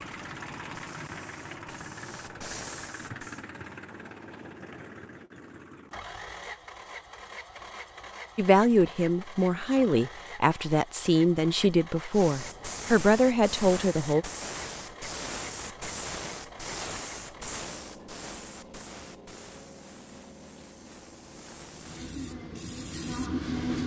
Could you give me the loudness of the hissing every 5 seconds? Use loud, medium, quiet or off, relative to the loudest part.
medium, off, loud, loud, loud.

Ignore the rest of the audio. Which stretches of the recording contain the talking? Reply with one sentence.
You can hear the talking from 8.3 to 14.2 s.